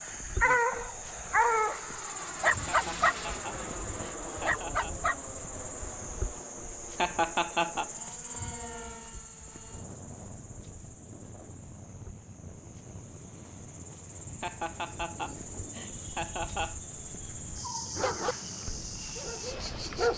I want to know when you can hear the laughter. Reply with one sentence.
You can hear the laughter from 2.6 to 5.0 s, from 7.0 to 7.9 s and from 14.4 to 16.8 s.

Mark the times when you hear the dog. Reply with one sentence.
The dog can be heard from 0.0 to 6.2 s and from 17.9 to 20.1 s.